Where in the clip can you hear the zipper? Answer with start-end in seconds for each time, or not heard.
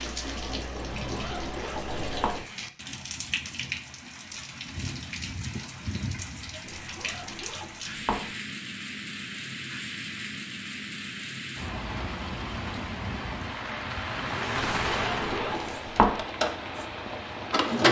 0.8-2.4, 6.7-8.3, 14.8-16.2.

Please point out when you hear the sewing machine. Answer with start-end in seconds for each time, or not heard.
0.0-2.4, 14.2-17.8.